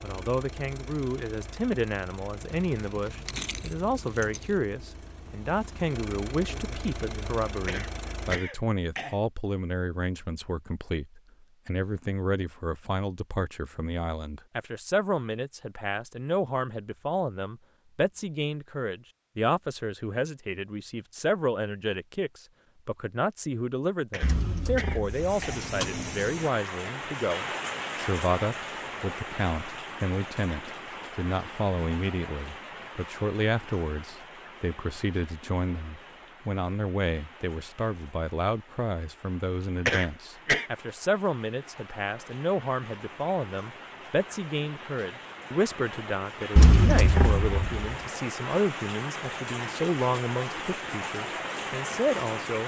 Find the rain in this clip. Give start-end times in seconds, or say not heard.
25.0-52.6.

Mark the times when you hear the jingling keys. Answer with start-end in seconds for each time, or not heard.
2.7-4.5, 24.2-26.0, 46.5-48.0.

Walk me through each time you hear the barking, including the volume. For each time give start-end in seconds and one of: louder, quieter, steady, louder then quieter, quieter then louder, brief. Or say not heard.
not heard.